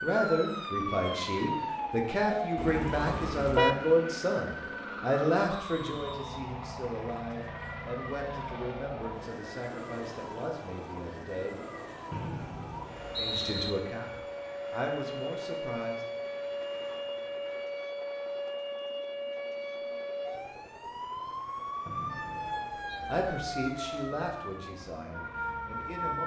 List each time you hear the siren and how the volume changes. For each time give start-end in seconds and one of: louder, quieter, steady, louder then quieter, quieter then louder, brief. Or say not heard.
0.0-26.2 quieter then louder.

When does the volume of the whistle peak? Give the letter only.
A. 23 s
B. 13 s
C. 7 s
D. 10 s
B.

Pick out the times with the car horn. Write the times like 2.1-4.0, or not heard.
2.5-4.0.